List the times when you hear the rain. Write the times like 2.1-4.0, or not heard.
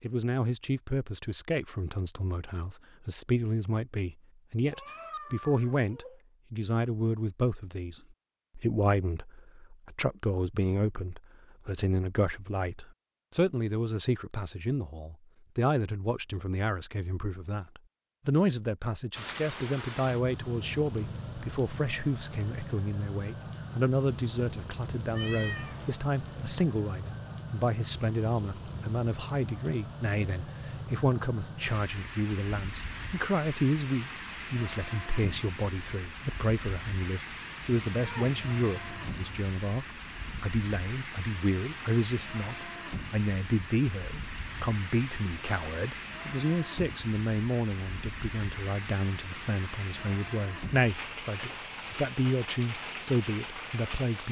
19.1-54.2.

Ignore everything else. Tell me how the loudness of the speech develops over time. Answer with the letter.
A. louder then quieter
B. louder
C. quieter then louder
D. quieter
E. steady
E.